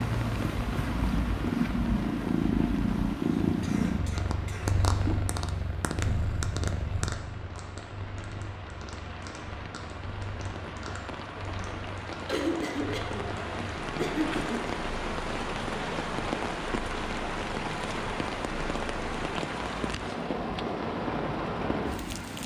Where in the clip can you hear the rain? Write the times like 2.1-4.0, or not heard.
0.0-22.4.